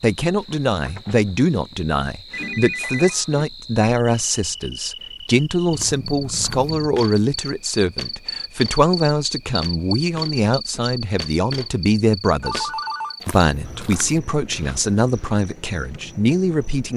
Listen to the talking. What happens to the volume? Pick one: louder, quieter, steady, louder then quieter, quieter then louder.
steady.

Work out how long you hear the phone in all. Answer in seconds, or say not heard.
3 s.